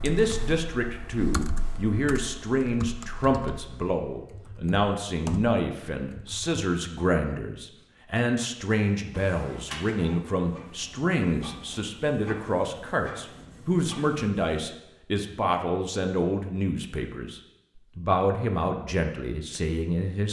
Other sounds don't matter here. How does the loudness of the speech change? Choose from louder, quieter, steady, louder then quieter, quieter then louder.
steady.